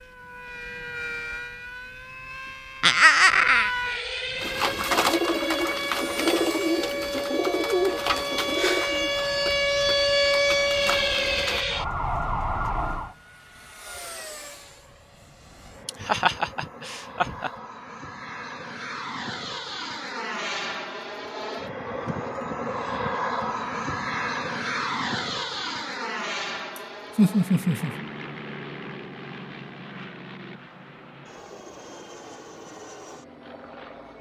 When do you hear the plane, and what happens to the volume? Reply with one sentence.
You can hear the plane from 4.2 to 34.1 s, getting louder then quieter.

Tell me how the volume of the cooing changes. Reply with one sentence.
The volume of the cooing goes down.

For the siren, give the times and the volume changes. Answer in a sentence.
The siren can be heard from 0.0 to 13.2 s, getting louder.